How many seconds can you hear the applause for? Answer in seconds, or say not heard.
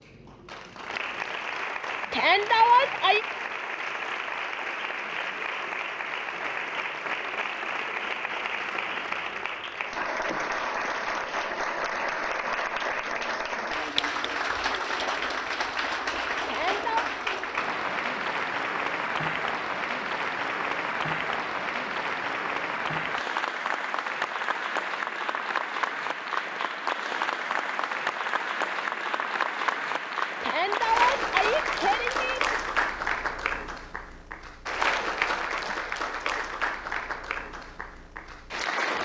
39 s.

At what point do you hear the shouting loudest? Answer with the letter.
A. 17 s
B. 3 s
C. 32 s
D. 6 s
B.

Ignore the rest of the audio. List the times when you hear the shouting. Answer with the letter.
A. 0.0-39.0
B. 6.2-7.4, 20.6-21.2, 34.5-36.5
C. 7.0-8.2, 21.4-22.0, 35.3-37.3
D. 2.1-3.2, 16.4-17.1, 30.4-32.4
D.